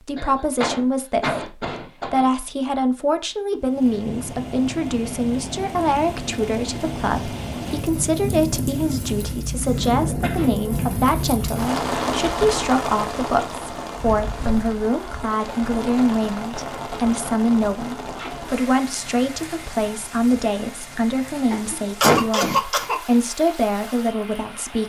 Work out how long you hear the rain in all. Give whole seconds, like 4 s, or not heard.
21 s.